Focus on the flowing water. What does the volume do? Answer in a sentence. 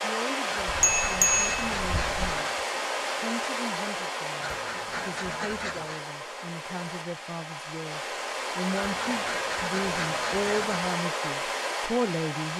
The volume of the flowing water goes down, then up.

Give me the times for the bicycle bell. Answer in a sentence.
The bicycle bell can be heard from 0.7 to 2.4 s.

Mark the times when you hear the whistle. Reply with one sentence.
The whistle can't be heard in this clip.